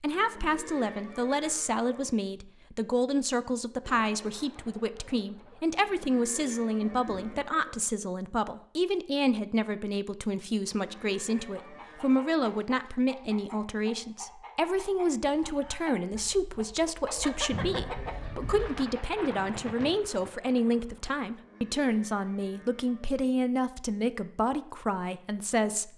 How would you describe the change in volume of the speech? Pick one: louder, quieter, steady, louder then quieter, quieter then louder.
steady.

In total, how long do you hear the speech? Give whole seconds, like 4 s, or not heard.
26 s.